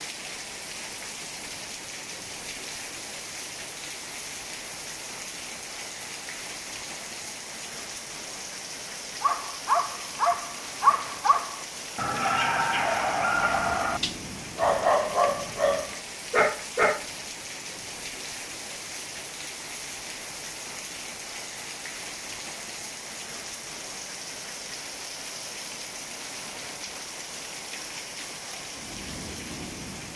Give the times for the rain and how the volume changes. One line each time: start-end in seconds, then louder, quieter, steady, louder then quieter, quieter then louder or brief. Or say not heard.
0.0-30.1 steady.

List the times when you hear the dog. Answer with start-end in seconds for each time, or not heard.
9.2-17.1.